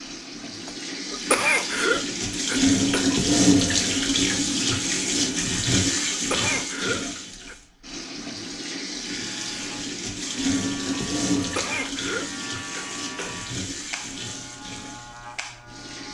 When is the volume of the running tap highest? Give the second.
3 s.